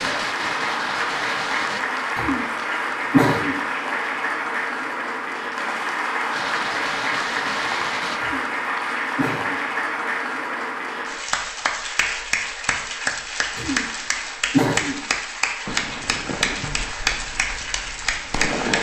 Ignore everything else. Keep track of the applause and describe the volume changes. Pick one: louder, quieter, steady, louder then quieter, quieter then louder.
steady.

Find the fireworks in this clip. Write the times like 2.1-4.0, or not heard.
0.0-1.8, 6.3-8.2, 15.7-18.7.